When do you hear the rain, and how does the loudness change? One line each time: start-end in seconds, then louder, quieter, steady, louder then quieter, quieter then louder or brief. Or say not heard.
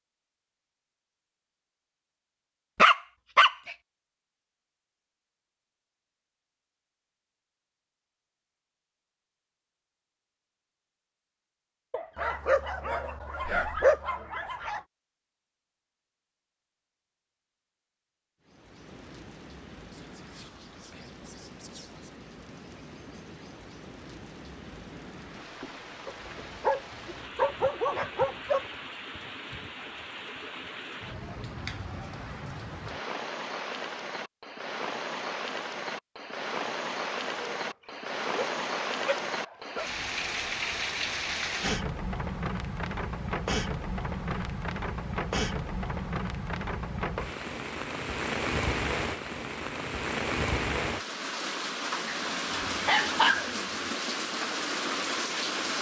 18.4-55.7 louder.